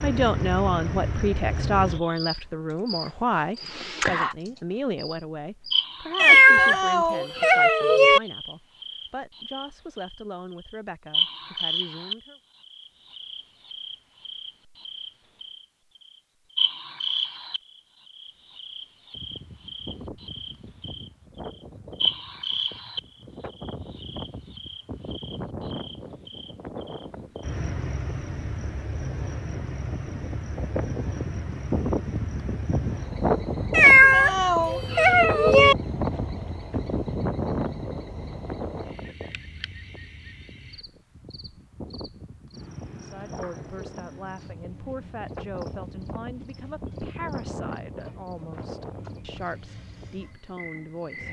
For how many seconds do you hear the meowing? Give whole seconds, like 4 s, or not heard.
4 s.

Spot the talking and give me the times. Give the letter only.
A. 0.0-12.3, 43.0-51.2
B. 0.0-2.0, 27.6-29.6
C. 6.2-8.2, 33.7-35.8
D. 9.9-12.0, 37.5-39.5
A.